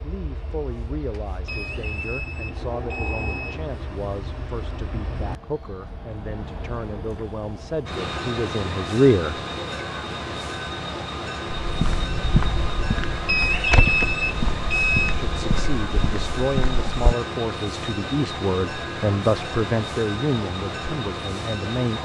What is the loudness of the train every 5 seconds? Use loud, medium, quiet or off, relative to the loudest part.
medium, loud, loud, loud, loud.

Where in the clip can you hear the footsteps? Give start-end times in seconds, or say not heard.
11.6-17.1.